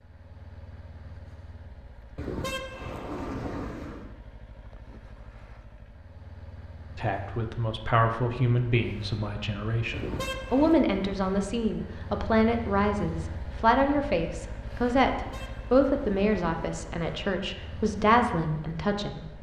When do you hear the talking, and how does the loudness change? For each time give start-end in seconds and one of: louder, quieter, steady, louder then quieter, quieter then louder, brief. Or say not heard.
7.0-19.3 steady.